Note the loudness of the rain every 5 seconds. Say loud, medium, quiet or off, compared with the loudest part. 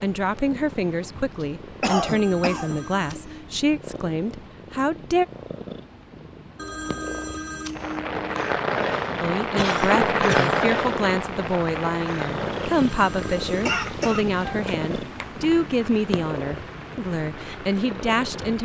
off, loud, loud, quiet.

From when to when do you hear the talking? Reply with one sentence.
The talking can be heard from 0.0 to 5.2 s and from 9.2 to 18.5 s.